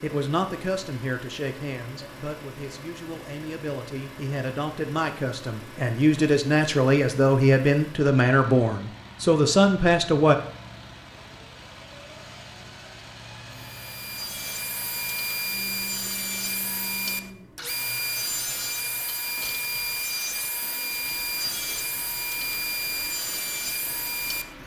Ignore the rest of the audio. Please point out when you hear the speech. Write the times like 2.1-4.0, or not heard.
0.0-10.3.